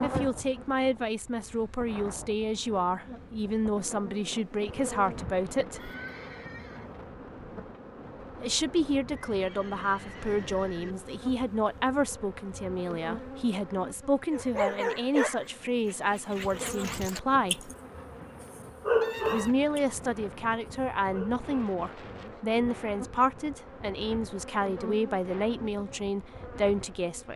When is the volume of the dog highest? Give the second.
19 s.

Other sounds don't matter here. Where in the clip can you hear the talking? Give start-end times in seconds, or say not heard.
0.0-5.9, 8.4-17.7, 19.2-27.3.